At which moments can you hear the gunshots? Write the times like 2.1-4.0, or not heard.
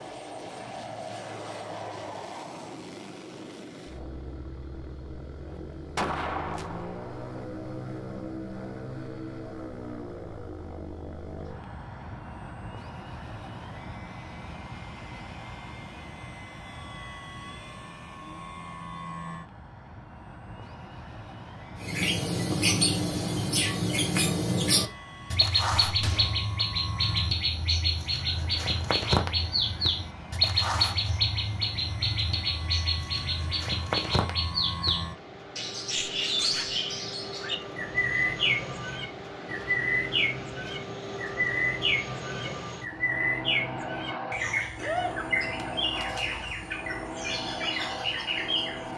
5.5-7.5, 25.8-26.4, 44.8-46.3.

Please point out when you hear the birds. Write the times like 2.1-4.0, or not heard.
21.8-48.9.